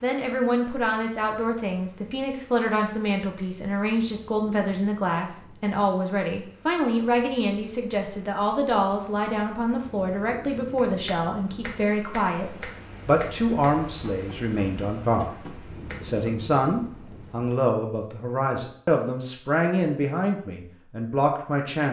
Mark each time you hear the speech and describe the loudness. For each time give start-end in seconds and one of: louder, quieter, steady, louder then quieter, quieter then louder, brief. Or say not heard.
0.0-21.8 steady.